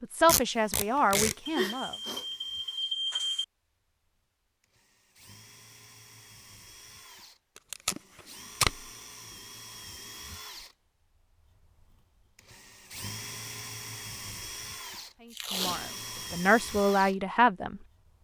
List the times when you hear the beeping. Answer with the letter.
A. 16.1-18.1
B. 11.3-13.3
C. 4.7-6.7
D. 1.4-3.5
D.